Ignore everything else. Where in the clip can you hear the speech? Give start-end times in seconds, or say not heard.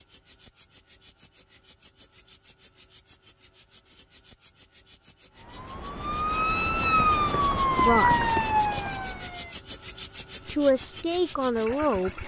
7.8-8.4, 10.4-12.2.